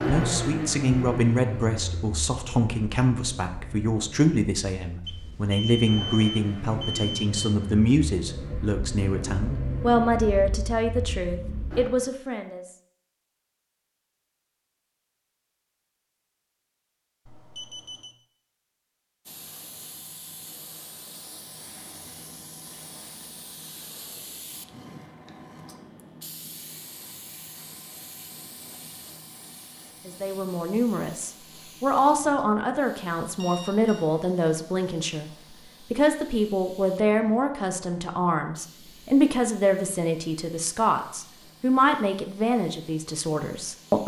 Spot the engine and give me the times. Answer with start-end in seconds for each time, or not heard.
0.0-11.9.